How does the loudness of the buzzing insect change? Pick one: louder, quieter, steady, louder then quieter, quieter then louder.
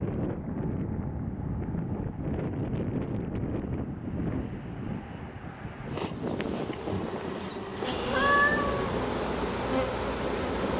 louder.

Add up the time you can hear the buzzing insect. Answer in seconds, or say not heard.
5 s.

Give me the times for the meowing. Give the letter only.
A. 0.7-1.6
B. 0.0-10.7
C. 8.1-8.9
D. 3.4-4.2
C.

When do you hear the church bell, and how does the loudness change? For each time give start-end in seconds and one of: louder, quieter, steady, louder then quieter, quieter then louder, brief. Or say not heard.
not heard.